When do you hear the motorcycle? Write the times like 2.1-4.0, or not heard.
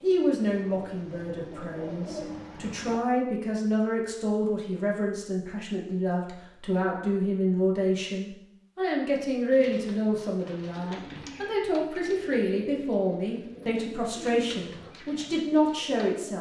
not heard.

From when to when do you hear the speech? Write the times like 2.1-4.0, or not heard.
0.0-16.3.